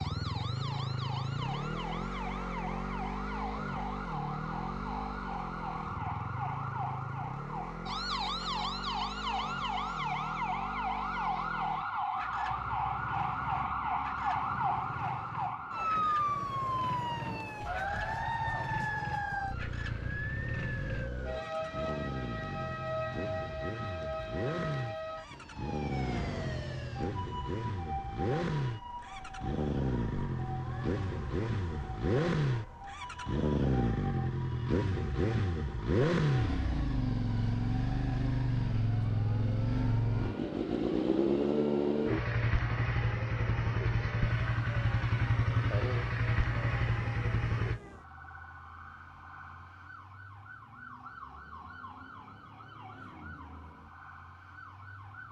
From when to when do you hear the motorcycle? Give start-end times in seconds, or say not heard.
0.0-47.8.